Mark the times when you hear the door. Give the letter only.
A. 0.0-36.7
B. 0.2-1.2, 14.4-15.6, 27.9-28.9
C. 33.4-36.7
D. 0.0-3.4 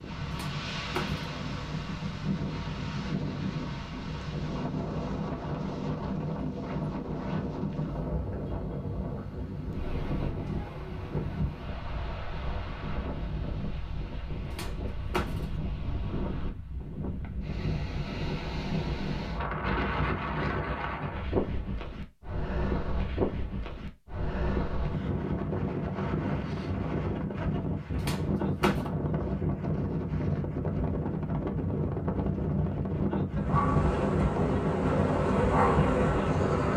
B.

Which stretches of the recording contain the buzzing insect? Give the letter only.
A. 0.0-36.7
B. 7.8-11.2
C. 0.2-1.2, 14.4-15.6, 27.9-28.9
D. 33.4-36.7
D.